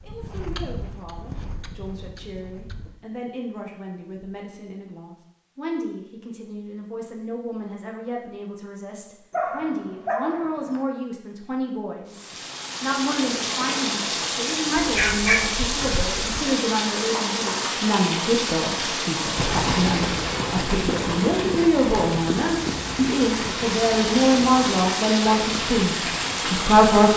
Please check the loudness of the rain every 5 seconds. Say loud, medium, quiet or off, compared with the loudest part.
off, off, loud, loud, loud, loud.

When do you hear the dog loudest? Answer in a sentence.
The volume of the dog peaks at 15 seconds.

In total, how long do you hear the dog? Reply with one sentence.
The dog can be heard for 3 seconds in total.